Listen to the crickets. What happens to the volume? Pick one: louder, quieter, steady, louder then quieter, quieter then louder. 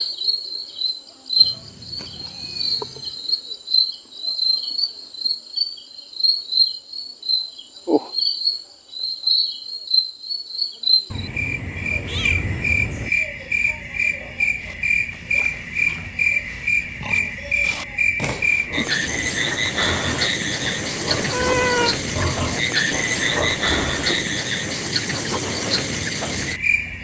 steady.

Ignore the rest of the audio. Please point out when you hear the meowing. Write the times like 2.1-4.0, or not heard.
1.4-3.1, 11.1-13.1, 21.1-21.9.